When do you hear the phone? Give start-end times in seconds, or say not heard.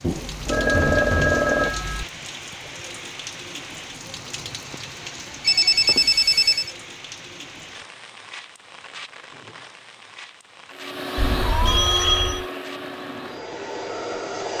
0.0-2.0, 5.4-6.7, 11.2-12.4.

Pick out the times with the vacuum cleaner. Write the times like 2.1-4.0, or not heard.
10.7-14.5.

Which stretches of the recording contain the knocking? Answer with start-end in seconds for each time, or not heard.
0.8-1.4.